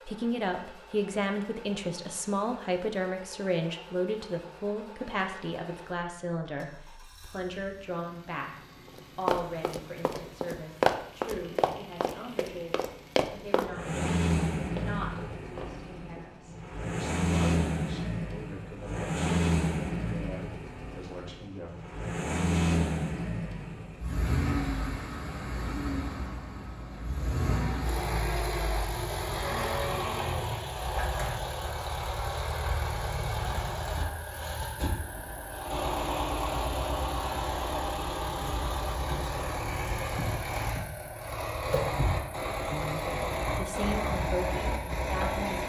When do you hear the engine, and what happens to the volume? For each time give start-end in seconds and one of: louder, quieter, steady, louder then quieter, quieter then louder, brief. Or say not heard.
0.0-45.6 louder.